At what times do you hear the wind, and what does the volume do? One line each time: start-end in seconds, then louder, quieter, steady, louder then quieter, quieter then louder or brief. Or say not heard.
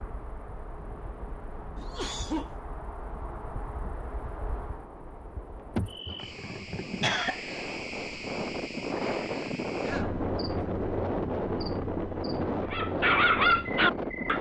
0.0-14.3 louder.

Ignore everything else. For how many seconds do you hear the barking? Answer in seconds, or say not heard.
2 s.